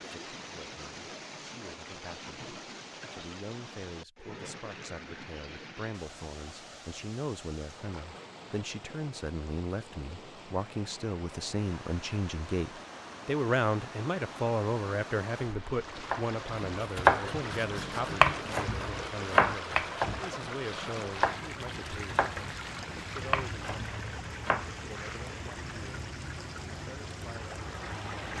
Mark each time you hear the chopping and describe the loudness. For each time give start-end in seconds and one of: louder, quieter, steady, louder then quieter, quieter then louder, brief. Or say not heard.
16.1-24.7 quieter.